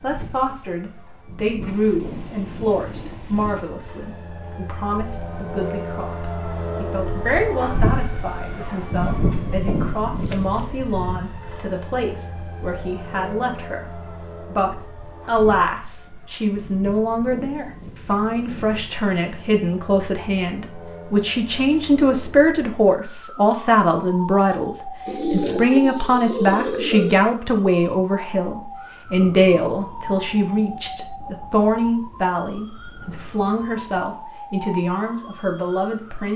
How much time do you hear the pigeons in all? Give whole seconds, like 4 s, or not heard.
5 s.